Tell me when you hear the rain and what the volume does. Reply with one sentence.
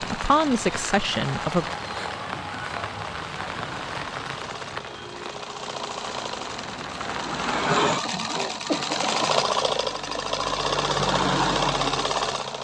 The rain can be heard from 0.0 to 7.2 s, getting quieter.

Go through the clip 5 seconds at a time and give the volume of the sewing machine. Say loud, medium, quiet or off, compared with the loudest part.
quiet, loud, loud.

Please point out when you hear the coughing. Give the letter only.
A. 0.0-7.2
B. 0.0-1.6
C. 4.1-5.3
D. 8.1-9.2
D.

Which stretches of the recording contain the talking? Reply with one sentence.
The talking can be heard from 0.0 to 1.6 s.